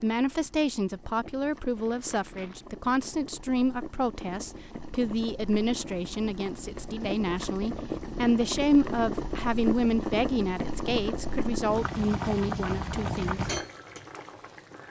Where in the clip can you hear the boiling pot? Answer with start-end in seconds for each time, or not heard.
0.0-14.8.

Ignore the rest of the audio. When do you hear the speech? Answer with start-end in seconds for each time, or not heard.
0.0-13.5.